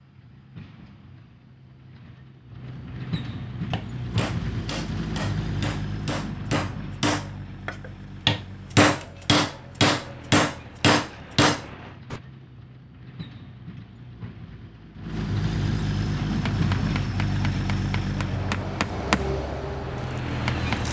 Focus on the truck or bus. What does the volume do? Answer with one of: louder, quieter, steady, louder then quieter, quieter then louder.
quieter then louder.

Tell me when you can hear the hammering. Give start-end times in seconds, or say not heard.
3.7-12.2, 16.3-20.8.